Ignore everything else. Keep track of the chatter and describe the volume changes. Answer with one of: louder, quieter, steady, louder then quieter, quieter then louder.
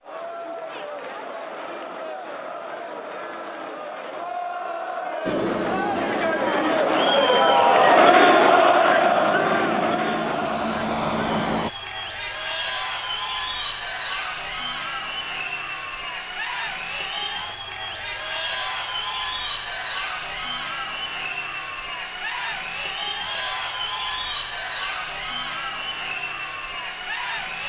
louder then quieter.